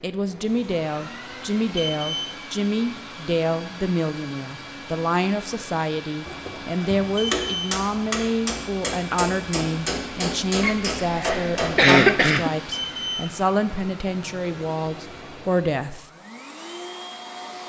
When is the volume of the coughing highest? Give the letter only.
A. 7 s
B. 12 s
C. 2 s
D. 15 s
B.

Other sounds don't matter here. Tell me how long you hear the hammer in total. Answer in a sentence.
The hammer can be heard for 6 seconds in total.